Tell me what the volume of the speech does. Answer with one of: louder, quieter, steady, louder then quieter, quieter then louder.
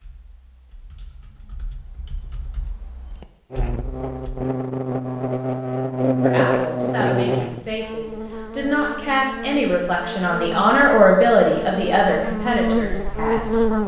louder then quieter.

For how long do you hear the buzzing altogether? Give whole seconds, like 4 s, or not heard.
10 s.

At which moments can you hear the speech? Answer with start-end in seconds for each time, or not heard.
6.2-13.8.